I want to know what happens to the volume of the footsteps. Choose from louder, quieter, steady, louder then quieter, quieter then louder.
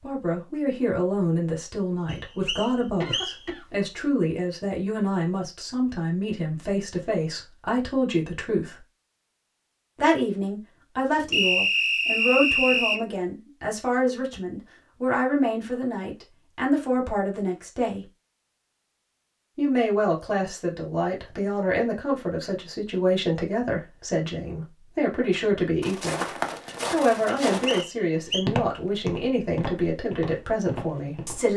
quieter.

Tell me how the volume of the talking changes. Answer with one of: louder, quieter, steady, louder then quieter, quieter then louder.
steady.